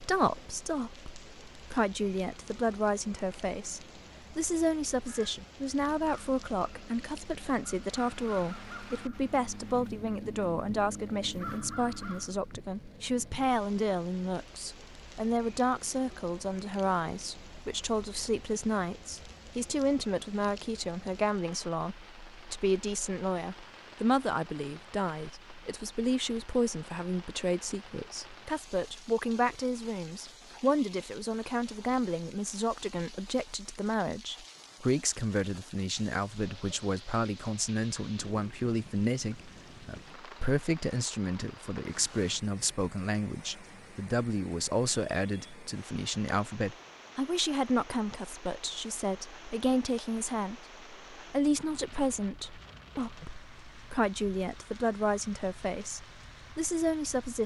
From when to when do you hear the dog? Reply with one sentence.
You can't hear the dog here.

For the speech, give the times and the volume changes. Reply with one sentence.
The speech can be heard from 0.0 to 57.4 s, at a steady volume.